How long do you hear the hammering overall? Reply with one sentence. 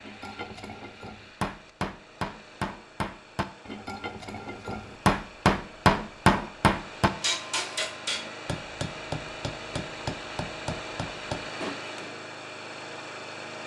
You can hear the hammering for 12 seconds altogether.